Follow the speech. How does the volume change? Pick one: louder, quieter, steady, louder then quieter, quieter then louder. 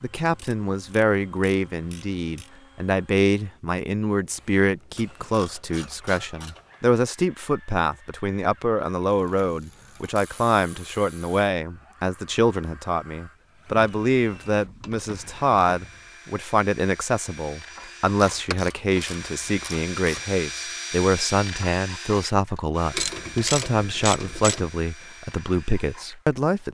steady.